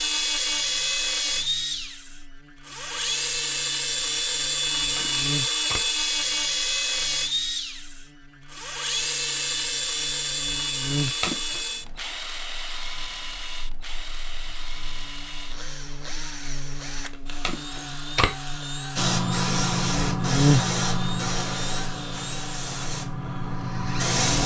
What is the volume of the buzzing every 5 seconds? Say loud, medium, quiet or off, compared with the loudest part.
quiet, quiet, medium, quiet, loud.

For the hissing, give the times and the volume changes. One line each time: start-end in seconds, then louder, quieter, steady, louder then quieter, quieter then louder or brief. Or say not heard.
18.9-24.4 quieter.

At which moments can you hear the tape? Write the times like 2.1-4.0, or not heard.
4.8-5.9, 10.9-11.6, 17.1-18.4.